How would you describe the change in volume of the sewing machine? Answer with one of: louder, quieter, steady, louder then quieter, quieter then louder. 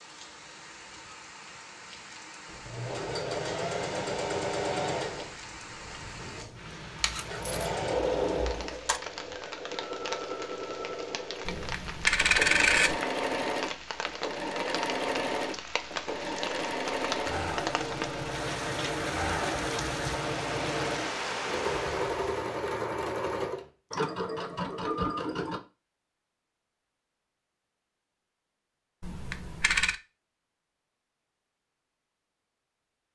steady.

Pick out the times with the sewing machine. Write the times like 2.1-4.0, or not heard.
2.5-25.6.